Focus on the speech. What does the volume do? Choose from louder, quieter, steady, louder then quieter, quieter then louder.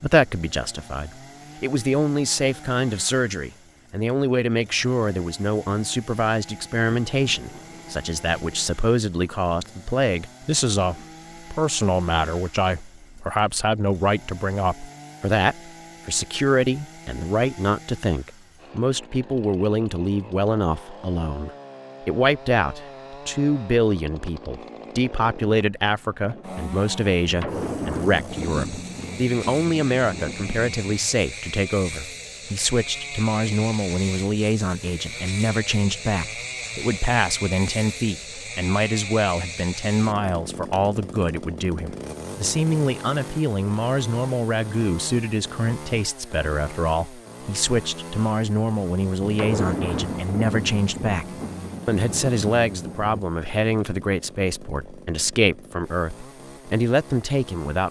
steady.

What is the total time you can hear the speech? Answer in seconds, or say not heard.
58 s.